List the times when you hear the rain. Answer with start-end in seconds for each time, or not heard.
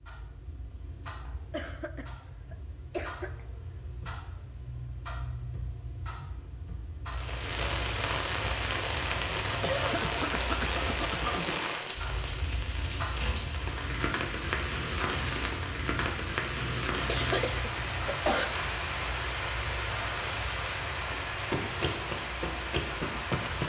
7.0-23.6.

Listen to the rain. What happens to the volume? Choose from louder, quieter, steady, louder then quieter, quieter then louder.
steady.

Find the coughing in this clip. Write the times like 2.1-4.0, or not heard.
1.5-3.3, 9.6-11.5, 17.1-18.4.